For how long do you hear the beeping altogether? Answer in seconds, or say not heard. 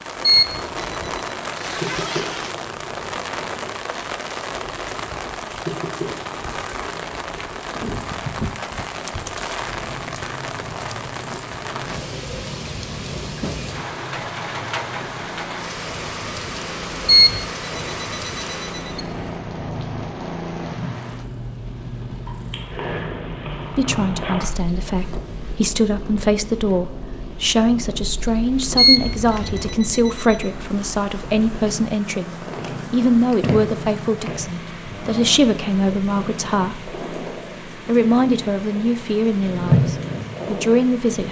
5 s.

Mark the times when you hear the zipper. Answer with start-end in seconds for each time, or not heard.
1.5-2.5, 28.9-29.8.